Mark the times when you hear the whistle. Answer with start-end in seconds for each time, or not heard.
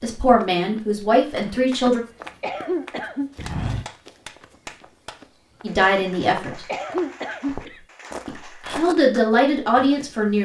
not heard.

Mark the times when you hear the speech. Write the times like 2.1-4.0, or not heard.
0.0-2.0, 5.6-6.7, 8.2-10.4.